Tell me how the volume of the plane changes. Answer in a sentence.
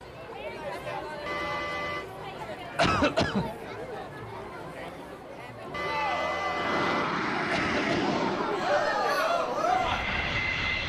The loudness of the plane goes down, then up.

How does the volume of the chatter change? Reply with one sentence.
The loudness of the chatter goes up.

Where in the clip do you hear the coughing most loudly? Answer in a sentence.
The volume of the coughing peaks at 3 seconds.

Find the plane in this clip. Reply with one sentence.
The plane can be heard from 6.5 to 10.8 s.